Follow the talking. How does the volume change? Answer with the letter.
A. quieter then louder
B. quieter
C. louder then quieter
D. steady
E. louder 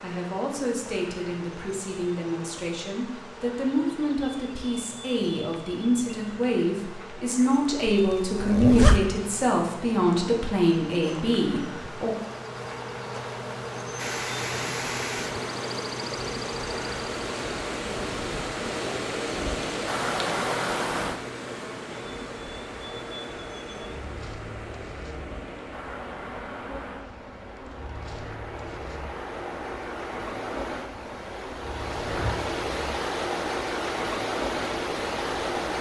E.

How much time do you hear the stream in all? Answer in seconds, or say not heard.
22 s.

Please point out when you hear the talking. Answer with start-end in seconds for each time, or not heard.
0.0-12.2.